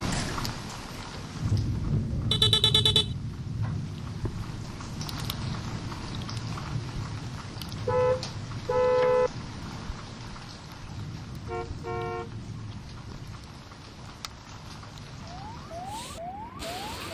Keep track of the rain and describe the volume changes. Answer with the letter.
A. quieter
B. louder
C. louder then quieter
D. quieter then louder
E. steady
A.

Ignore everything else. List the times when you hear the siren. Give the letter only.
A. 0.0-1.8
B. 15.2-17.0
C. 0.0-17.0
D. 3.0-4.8
B.